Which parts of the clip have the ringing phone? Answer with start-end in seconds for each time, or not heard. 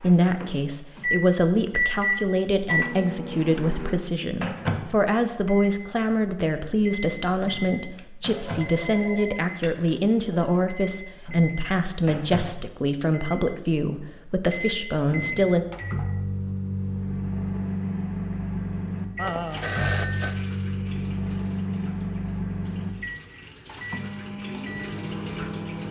8.0-10.7, 19.1-20.4.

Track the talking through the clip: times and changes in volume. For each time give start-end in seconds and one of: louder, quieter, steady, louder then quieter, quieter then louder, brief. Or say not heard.
0.0-15.7 steady.